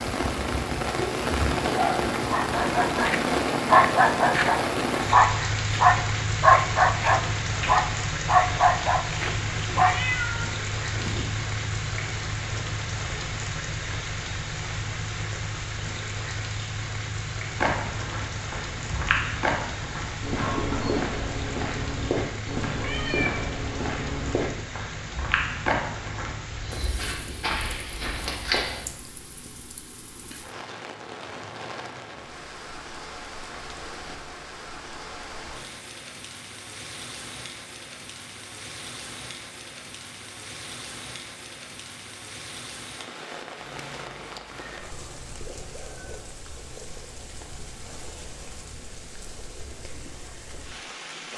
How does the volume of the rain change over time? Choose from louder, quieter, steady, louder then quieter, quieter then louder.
quieter.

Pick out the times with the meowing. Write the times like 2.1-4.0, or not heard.
9.8-11.3, 22.8-23.4, 43.5-46.2.